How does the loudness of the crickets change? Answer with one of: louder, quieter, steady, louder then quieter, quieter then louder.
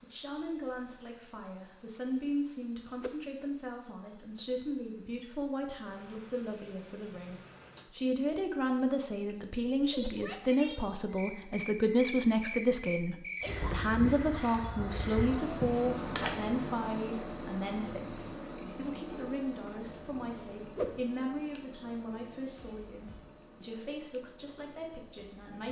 louder then quieter.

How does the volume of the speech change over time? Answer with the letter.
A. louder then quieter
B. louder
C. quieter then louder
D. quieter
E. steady
A.